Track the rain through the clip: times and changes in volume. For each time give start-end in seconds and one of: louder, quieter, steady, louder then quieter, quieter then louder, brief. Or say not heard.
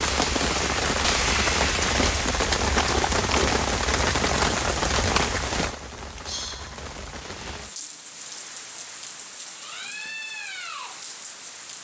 0.0-11.7 quieter.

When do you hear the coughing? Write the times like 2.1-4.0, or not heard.
2.7-3.5.